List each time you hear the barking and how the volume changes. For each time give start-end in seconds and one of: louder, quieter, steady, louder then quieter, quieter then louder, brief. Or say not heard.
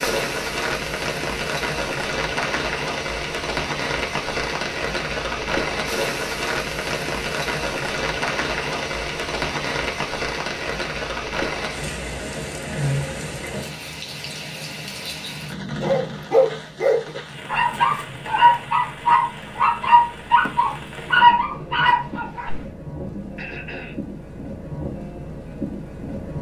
15.8-22.6 steady.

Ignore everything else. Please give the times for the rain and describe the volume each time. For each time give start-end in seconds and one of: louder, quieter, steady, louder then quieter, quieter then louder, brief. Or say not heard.
0.0-26.3 quieter.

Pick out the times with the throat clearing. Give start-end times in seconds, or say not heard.
23.4-24.0.